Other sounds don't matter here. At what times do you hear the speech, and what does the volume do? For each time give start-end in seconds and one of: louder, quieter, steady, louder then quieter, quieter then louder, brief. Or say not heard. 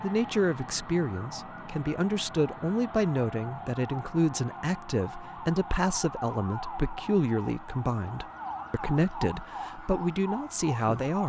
0.0-11.2 steady.